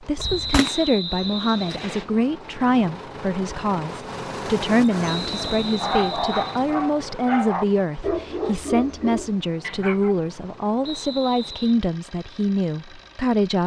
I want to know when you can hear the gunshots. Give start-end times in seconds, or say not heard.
0.1-1.4.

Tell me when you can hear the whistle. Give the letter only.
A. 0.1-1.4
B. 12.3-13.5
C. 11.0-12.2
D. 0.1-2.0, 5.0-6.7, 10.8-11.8
D.